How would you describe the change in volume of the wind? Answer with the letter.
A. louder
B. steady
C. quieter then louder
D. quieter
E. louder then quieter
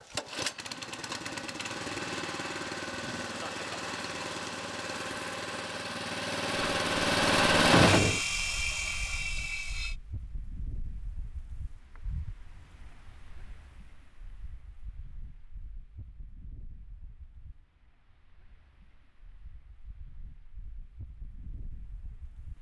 C.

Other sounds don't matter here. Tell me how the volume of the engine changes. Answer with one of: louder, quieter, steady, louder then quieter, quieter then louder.
louder.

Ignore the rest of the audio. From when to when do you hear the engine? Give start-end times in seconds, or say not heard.
0.0-9.9.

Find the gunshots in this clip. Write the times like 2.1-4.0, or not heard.
7.7-8.2.